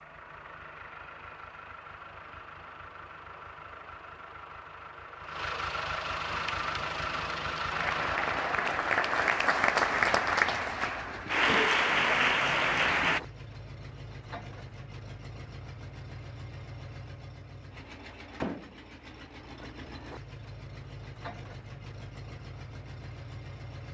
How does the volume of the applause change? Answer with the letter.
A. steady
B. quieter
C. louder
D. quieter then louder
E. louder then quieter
C.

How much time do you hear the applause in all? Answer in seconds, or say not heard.
7 s.